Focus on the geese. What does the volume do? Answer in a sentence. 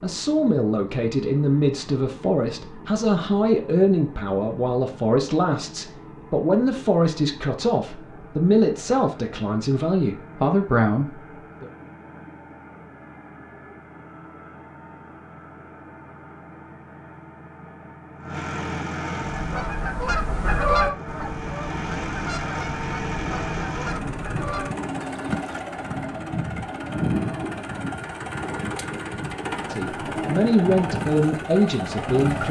The loudness of the geese goes down.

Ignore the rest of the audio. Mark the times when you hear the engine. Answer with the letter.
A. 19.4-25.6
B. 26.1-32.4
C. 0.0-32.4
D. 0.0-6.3
C.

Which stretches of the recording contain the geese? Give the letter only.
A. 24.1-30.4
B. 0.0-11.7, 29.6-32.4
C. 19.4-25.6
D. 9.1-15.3
C.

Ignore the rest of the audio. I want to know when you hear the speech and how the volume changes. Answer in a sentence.
The speech can be heard from 0.0 to 11.7 s, at a steady volume; and briefly from 29.6 to 32.4 s.